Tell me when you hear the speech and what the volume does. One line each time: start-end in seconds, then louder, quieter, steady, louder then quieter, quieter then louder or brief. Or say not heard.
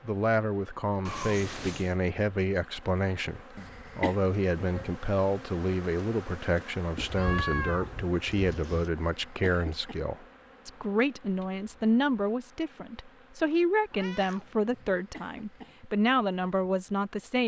0.0-17.4 steady.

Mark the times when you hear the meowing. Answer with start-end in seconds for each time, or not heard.
1.1-1.9, 7.0-8.9, 13.9-15.0.